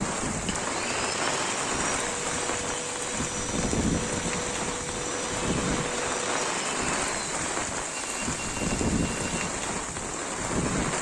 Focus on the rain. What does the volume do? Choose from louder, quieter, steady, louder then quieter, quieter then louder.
steady.